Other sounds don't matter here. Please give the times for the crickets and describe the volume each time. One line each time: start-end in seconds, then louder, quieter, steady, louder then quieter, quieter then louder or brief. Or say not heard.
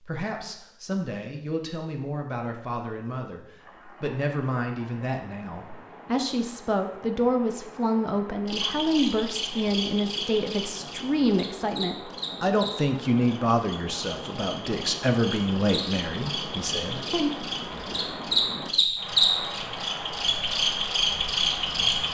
8.4-22.0 louder.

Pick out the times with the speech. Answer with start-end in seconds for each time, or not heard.
0.0-17.3.